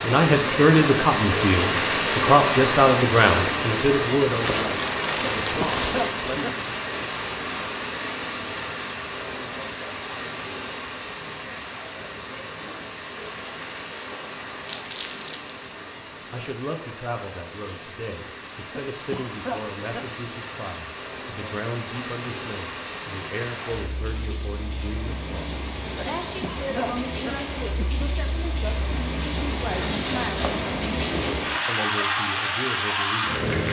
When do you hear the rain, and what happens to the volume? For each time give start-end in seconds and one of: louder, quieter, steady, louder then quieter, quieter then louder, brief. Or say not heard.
0.0-33.6 quieter then louder.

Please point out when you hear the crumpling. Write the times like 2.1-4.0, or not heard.
4.4-6.3, 14.7-15.6, 29.8-31.4.